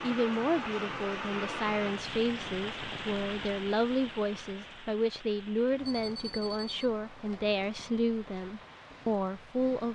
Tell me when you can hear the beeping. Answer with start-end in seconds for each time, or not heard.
5.8-6.8.